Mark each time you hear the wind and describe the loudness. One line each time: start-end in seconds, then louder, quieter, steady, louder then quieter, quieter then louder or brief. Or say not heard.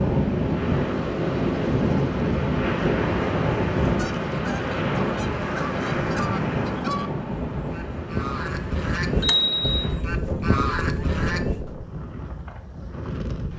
0.0-13.5 quieter.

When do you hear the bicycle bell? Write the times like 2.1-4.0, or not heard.
9.2-9.9.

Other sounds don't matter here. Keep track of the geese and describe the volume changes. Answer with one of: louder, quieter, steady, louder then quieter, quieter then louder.
louder.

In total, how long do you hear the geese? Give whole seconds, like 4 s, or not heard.
8 s.